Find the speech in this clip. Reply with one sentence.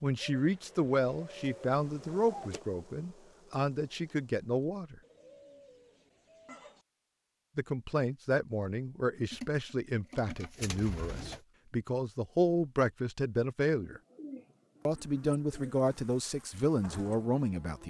The speech can be heard from 0.0 to 5.0 s, from 7.5 to 14.0 s and from 14.8 to 17.8 s.